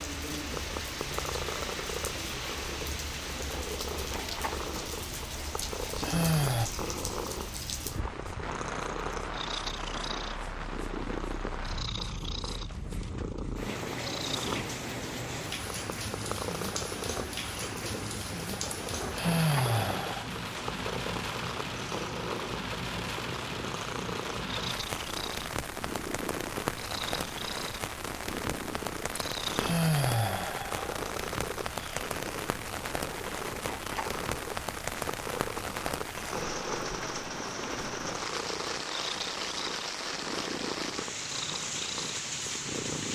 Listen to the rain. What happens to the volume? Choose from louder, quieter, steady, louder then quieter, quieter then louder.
steady.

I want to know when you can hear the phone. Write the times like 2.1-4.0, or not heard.
not heard.